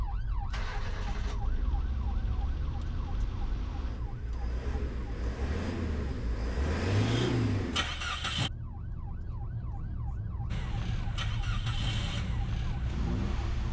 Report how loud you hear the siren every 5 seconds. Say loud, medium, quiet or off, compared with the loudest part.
medium, medium, loud.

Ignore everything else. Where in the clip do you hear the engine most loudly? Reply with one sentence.
The volume of the engine peaks at 7 seconds.